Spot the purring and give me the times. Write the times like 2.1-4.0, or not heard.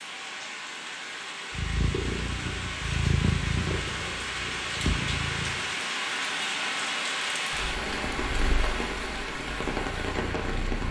1.5-5.8, 7.5-10.8.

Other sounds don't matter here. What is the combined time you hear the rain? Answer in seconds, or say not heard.
11 s.